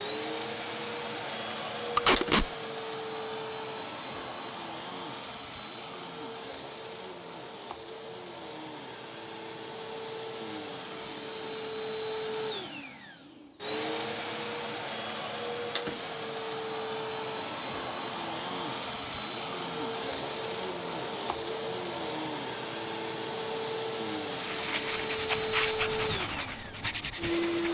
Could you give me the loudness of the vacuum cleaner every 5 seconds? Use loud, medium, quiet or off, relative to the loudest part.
loud, medium, loud, loud, loud, loud.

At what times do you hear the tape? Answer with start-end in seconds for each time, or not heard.
1.9-2.5.